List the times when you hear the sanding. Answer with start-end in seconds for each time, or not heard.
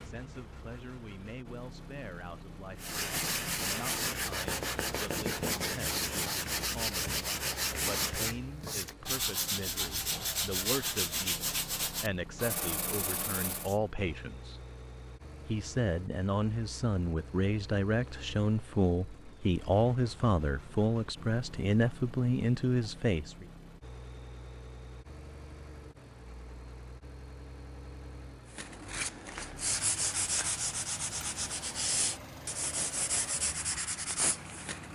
2.8-13.8, 28.5-34.9.